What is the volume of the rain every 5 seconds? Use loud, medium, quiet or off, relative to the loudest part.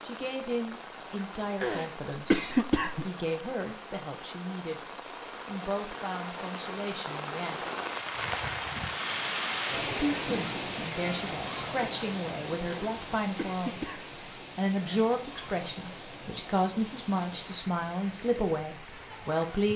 medium, loud, loud, medium.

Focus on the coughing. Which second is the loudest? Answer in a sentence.
The loudest moment of the coughing is at 2 seconds.